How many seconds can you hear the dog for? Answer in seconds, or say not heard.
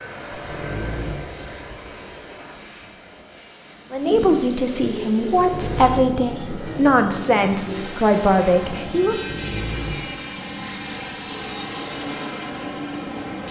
3 s.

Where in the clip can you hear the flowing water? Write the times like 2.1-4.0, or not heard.
not heard.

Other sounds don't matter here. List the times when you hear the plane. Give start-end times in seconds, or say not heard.
0.0-13.4.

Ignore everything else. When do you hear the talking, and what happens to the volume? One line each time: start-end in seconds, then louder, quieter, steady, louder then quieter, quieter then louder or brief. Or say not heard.
3.9-9.2 steady.